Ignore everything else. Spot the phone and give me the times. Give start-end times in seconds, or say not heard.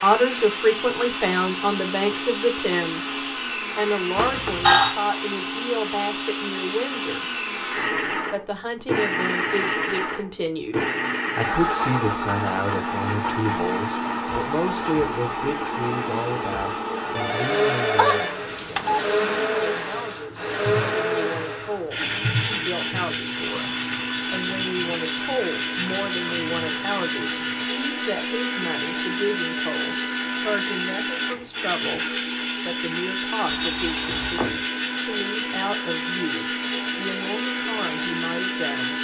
4.2-5.0, 17.1-19.0, 33.5-34.6.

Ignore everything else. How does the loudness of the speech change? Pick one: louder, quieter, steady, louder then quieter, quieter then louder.
quieter.